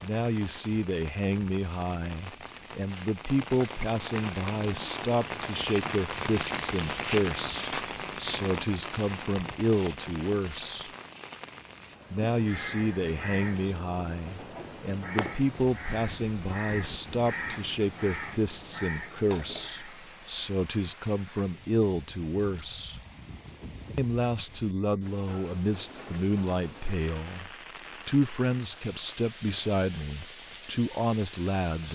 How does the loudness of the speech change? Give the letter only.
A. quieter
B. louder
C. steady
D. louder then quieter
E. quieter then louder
C.